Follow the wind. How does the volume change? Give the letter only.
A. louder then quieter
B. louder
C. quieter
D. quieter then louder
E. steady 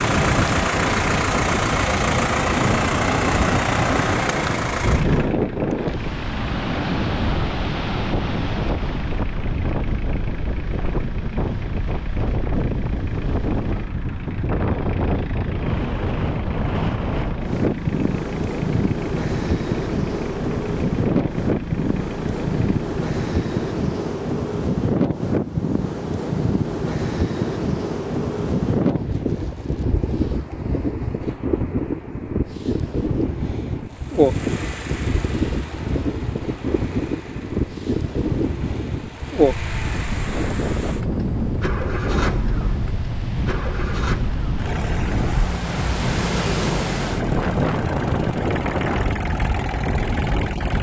E.